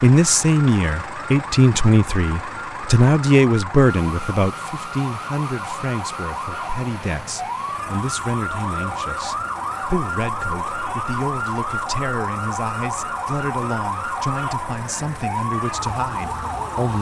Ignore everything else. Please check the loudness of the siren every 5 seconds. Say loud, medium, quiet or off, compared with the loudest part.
medium, loud, loud, loud.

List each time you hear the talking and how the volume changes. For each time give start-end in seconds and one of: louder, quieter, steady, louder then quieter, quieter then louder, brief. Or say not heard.
0.0-16.9 quieter.